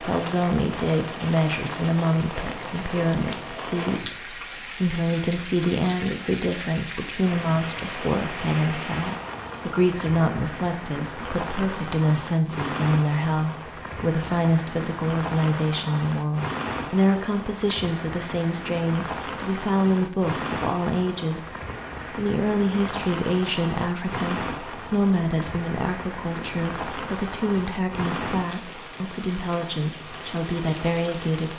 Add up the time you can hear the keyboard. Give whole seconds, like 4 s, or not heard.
not heard.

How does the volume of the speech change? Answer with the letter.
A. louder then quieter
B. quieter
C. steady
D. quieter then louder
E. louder
C.